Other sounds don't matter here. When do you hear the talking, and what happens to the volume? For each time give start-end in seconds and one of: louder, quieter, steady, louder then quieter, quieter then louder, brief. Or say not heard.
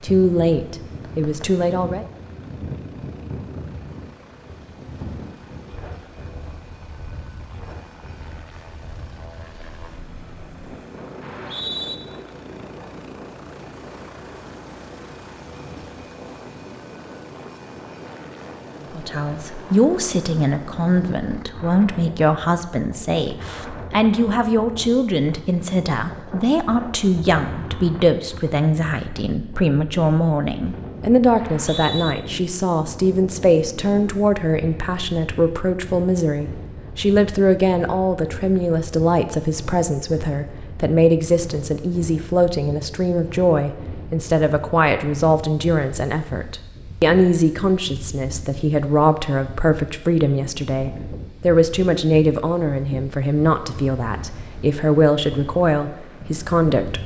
0.0-2.0 brief
18.8-57.0 steady.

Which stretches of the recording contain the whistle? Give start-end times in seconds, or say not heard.
11.2-11.9, 31.4-32.1.